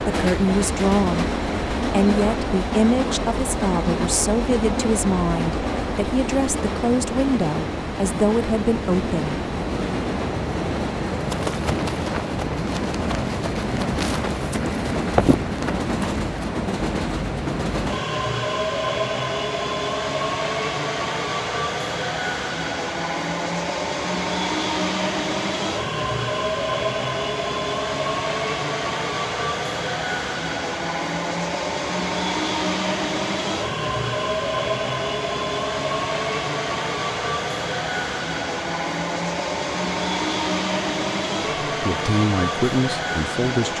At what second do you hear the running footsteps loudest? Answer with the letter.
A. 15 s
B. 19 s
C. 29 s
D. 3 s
A.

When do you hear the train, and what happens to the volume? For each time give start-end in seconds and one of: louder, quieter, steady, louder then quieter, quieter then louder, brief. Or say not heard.
0.0-43.7 steady.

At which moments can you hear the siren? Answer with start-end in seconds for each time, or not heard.
not heard.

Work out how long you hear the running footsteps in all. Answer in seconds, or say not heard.
5 s.